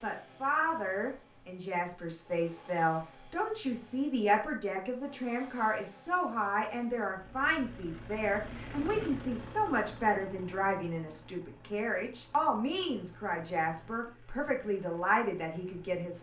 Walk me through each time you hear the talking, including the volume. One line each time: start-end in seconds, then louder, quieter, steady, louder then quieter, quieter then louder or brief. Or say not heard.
0.0-16.1 steady.